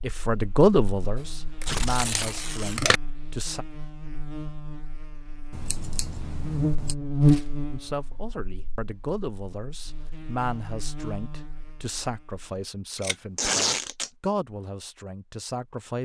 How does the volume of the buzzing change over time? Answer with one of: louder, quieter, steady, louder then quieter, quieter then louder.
louder then quieter.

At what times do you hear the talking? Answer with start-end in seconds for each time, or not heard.
0.0-3.6, 7.7-16.0.